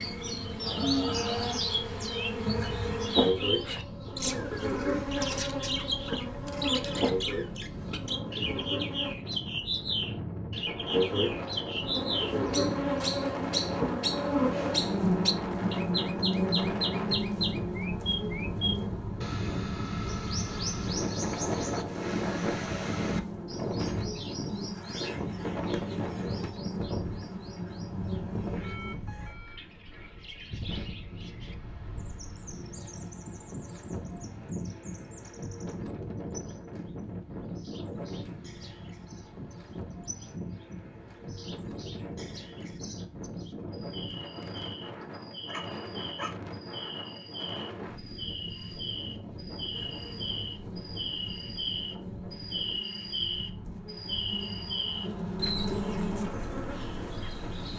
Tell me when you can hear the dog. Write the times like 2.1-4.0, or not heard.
44.5-46.4.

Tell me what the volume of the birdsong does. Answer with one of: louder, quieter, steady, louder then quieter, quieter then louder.
quieter then louder.